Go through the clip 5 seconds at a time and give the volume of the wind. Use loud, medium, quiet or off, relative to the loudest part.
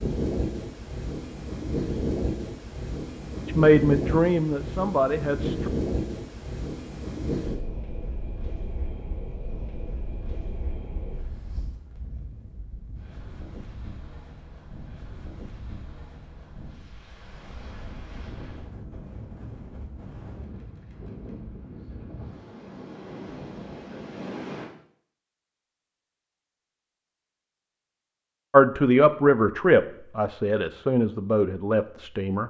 loud, loud, quiet, quiet, medium, off, off.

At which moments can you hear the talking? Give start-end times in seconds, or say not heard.
3.5-5.7, 28.5-32.4.